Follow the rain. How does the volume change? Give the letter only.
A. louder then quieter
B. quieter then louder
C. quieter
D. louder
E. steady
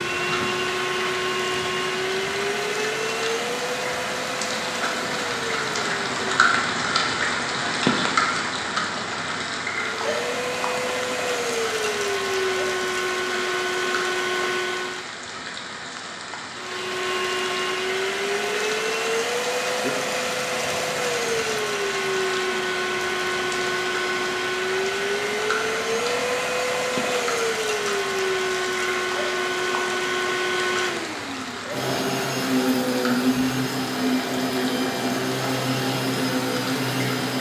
C.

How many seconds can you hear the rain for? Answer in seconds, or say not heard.
37 s.